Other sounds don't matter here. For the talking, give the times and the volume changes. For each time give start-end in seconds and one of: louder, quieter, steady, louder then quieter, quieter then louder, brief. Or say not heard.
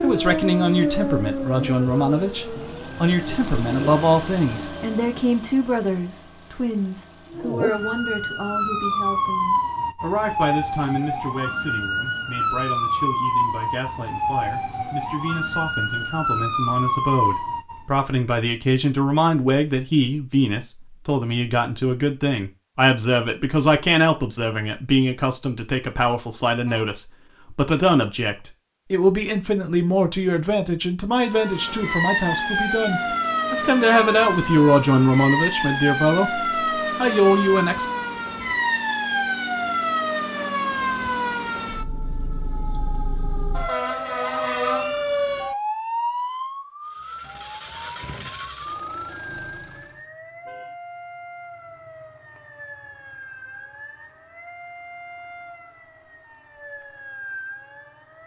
0.0-37.9 quieter then louder.